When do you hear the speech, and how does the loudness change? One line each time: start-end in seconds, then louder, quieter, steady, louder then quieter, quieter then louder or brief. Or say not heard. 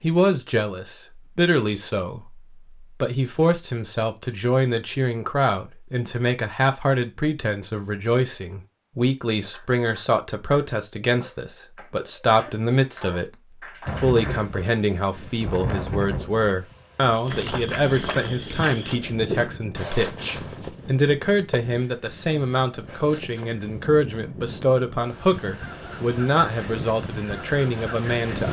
0.0-13.3 steady
13.9-28.4 steady.